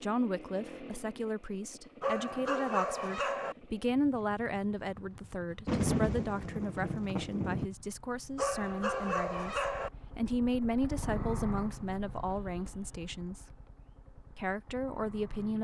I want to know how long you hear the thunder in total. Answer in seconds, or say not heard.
2 s.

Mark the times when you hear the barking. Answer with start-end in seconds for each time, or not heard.
2.0-3.5, 8.3-9.9.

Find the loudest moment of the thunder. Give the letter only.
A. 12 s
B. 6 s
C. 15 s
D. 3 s
B.